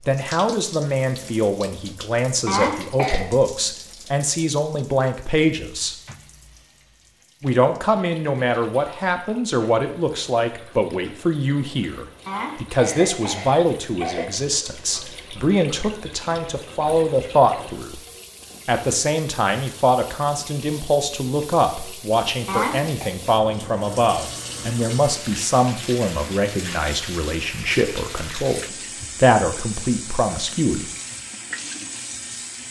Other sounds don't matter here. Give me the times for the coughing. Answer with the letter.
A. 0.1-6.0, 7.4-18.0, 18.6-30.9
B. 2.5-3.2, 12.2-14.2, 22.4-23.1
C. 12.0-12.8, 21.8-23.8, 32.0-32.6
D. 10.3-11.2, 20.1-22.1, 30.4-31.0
B.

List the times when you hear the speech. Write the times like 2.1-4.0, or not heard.
0.1-6.0, 7.4-18.0, 18.6-30.9.